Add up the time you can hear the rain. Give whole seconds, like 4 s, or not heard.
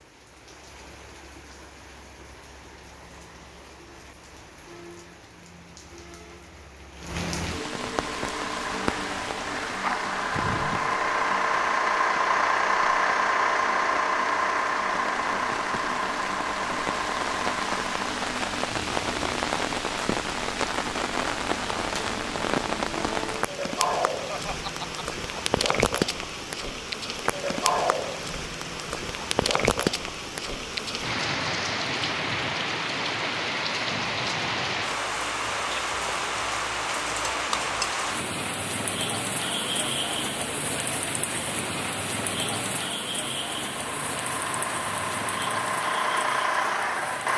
47 s.